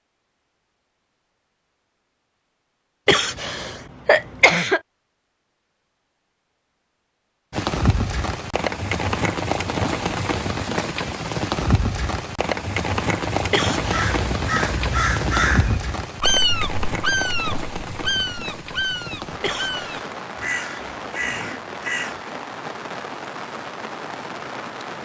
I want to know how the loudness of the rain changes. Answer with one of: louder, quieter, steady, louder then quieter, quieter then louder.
quieter.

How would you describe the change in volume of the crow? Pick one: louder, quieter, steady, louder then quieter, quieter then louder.
quieter.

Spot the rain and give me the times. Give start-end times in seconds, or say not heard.
7.5-25.0.